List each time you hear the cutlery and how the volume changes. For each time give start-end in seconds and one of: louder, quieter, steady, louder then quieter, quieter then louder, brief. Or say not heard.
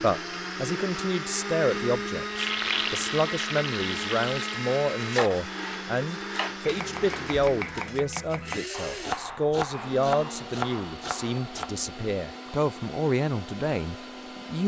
not heard.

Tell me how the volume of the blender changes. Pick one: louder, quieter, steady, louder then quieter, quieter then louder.
quieter.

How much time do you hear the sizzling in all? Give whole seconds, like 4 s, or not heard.
2 s.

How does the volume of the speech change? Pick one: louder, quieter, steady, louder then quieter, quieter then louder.
steady.